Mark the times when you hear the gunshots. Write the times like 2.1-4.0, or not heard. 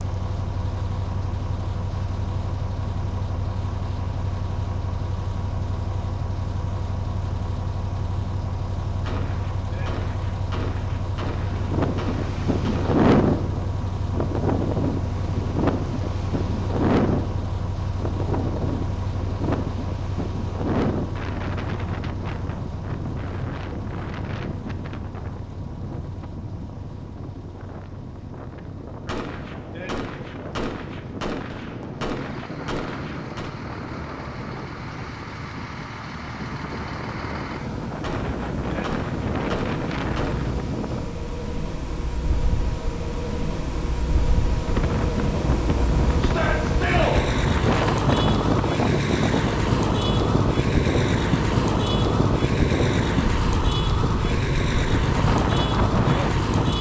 9.0-12.9, 29.1-33.5, 38.0-40.5.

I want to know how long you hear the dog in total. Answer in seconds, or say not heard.
not heard.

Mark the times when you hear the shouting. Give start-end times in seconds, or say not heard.
46.2-47.2.